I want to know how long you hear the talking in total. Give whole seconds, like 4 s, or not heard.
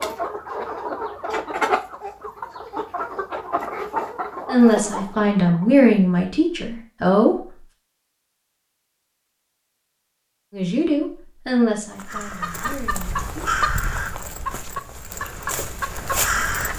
6 s.